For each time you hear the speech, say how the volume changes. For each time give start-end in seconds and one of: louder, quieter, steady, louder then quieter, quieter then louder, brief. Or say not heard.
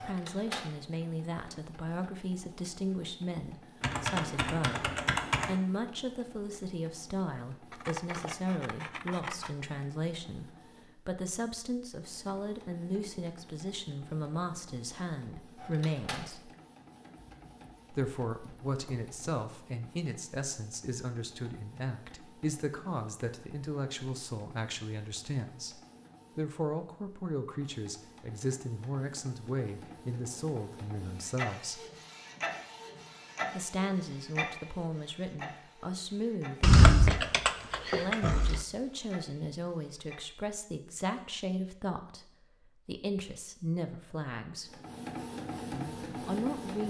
0.0-16.5 steady
17.9-31.9 steady
33.5-44.8 steady
45.7-46.8 brief.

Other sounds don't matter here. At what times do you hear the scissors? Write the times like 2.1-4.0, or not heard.
7.7-9.6.